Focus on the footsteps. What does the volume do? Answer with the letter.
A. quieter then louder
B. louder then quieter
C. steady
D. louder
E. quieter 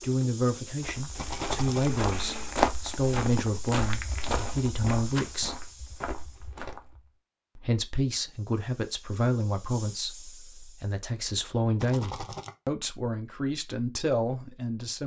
B.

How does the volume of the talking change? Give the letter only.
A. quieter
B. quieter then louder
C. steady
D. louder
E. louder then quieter
C.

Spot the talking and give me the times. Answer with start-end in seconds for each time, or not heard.
0.0-5.7, 7.5-15.0.